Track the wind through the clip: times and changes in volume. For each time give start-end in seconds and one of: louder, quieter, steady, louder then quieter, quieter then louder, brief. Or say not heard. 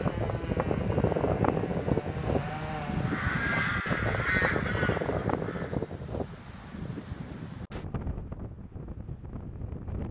0.0-10.0 quieter.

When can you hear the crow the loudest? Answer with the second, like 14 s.
4 s.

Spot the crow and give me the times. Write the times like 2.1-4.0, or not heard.
3.0-6.0.